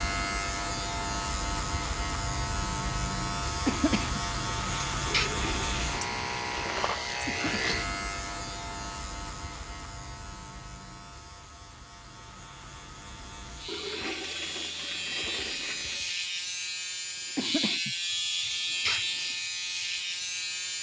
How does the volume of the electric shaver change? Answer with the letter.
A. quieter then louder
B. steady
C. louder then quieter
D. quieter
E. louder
A.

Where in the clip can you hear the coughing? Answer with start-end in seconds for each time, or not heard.
3.6-5.3, 7.2-7.8, 17.4-19.4.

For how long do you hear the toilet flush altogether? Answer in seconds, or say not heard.
4 s.